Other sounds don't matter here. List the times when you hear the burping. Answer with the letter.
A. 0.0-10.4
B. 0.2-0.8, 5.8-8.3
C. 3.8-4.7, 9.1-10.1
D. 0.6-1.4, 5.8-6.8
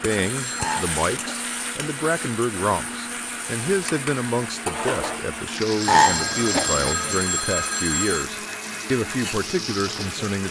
D.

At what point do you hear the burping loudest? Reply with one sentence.
The volume of the burping peaks at 6 seconds.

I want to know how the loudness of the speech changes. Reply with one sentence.
The volume of the speech stays about the same.